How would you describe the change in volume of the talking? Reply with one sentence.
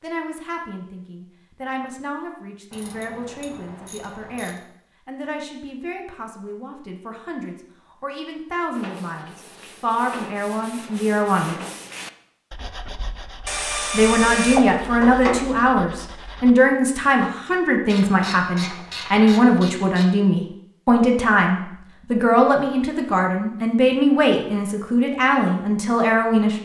The volume of the talking goes up.